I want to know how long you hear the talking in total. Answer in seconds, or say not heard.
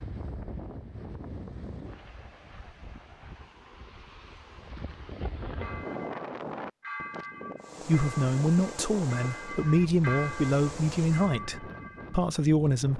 5 s.